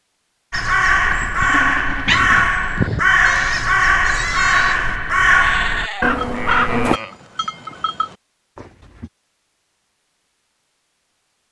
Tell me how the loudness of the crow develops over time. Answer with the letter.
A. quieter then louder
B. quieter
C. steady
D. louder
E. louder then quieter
C.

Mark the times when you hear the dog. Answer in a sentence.
The dog can't be heard in this clip.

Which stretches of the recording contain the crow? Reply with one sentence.
The crow can be heard from 0.5 to 7.0 s.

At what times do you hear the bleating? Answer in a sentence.
You can hear the bleating from 1.0 to 9.1 s.